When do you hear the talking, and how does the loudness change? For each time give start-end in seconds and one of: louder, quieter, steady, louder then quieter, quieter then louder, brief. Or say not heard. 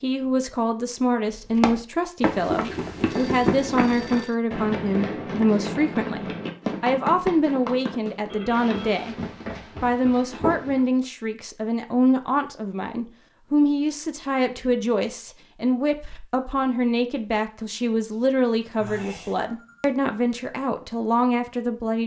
0.0-9.2 steady
9.8-22.0 steady.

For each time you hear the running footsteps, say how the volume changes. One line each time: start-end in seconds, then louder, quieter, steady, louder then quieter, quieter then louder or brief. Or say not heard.
1.3-10.8 quieter.